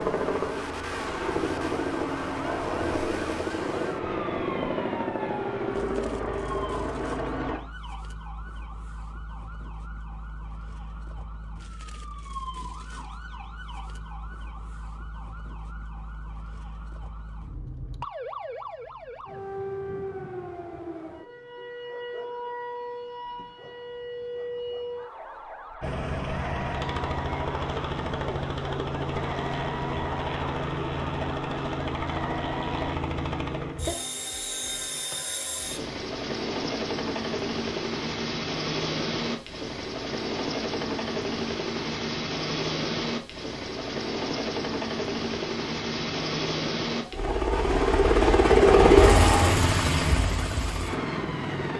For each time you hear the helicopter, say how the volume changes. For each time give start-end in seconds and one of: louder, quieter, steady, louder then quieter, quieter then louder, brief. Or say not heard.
0.0-7.6 steady
25.8-51.7 louder.